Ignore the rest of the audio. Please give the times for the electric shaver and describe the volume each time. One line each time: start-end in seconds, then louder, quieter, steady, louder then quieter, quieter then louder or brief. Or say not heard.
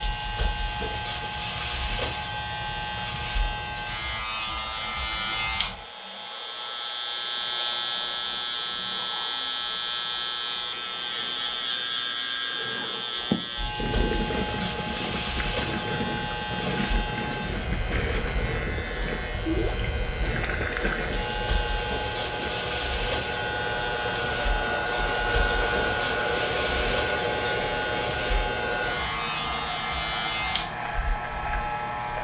0.0-32.1 steady.